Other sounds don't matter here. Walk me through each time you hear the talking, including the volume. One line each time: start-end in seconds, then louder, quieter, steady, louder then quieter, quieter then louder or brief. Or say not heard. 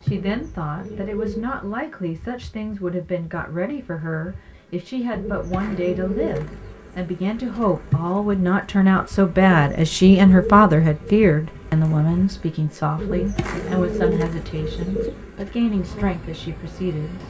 0.0-17.2 louder then quieter.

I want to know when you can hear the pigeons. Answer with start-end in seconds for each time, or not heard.
0.1-1.8, 5.1-6.8, 9.4-11.3, 12.9-15.2.